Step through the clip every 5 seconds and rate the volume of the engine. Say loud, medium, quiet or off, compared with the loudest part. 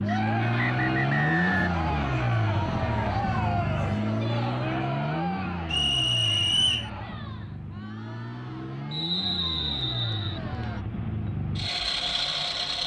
loud, medium, loud.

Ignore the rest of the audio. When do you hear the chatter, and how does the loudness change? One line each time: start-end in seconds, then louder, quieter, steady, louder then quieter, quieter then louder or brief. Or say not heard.
0.0-10.8 quieter.